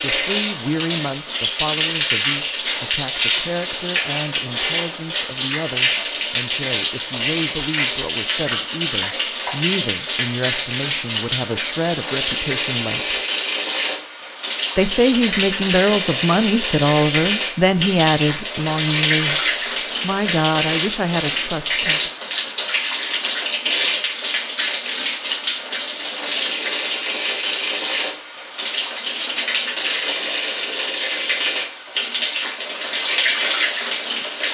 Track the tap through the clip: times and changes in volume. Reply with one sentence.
The tap can be heard from 0.0 to 34.5 s, at a steady volume.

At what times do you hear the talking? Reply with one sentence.
The talking can be heard from 0.0 to 13.2 s, from 14.8 to 19.4 s and from 20.0 to 22.1 s.